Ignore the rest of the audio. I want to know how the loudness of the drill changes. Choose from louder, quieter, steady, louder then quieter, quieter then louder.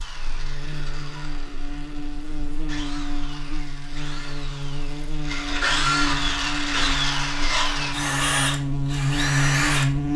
louder.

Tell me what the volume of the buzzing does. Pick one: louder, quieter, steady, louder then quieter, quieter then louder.
louder.